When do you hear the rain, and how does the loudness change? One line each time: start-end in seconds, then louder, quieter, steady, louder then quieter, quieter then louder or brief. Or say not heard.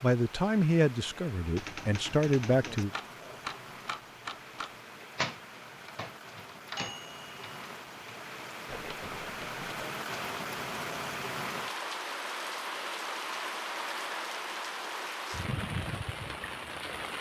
0.0-17.1 louder.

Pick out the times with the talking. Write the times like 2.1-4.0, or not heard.
0.0-2.9.